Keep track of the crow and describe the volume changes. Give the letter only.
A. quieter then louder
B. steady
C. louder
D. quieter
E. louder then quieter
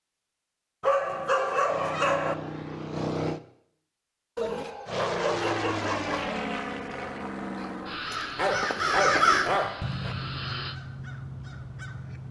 E.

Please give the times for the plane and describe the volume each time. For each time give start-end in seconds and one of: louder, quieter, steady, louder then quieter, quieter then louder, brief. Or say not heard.
1.6-3.4 brief
4.8-10.8 quieter.